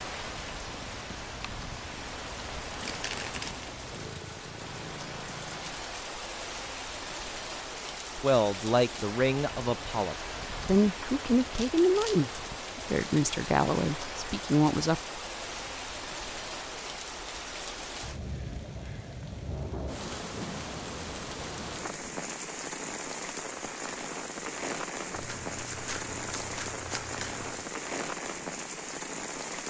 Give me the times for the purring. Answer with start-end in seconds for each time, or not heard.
0.0-6.0.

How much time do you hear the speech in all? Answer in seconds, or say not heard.
7 s.